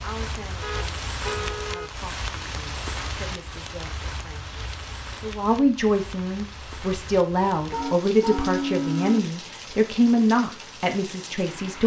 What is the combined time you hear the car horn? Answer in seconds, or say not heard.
3 s.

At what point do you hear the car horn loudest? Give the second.
9 s.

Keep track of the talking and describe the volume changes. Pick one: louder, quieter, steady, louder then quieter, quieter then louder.
louder.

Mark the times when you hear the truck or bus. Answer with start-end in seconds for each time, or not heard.
not heard.